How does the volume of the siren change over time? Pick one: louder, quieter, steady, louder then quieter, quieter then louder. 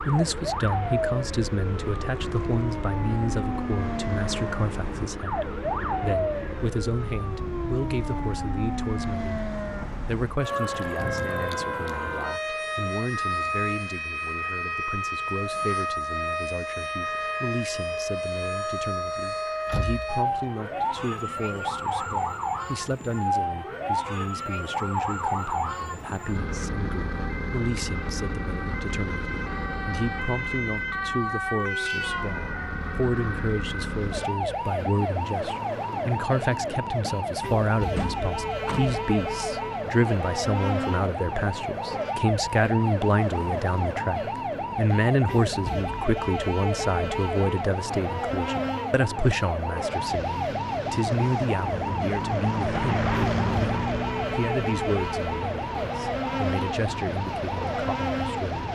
steady.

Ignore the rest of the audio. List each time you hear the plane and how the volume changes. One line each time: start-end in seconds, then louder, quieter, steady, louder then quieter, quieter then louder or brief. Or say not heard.
0.0-6.8 steady
49.8-58.6 louder then quieter.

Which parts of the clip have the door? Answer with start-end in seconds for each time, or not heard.
19.6-20.2, 38.0-39.0.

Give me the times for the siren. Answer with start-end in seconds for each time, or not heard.
0.0-58.6.